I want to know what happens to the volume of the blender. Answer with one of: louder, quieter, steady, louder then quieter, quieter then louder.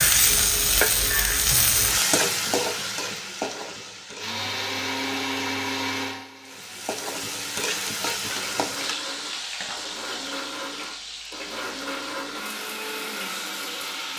quieter then louder.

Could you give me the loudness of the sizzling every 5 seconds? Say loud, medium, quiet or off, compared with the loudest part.
loud, medium, quiet.